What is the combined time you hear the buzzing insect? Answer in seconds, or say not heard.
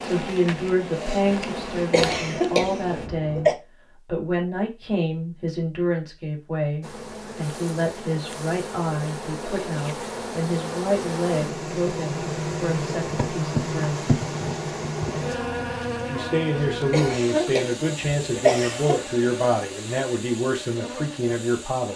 18 s.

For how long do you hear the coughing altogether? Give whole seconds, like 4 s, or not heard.
4 s.